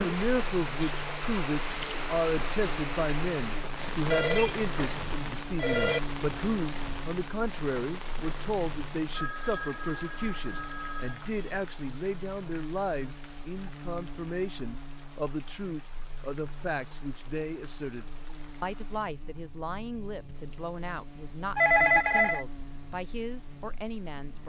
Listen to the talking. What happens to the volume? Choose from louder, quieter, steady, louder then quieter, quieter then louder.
quieter.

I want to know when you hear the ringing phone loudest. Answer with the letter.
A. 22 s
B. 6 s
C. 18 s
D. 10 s
A.